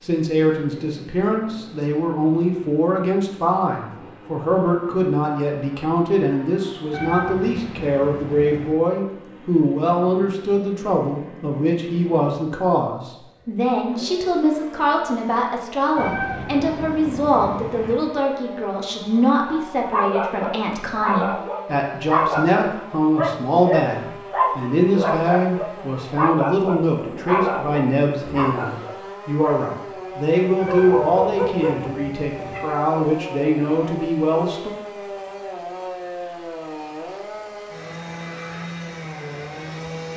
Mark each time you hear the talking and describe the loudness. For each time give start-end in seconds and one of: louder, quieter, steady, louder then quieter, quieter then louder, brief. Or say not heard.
0.0-34.8 steady.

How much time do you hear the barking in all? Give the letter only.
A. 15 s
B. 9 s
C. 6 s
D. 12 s
D.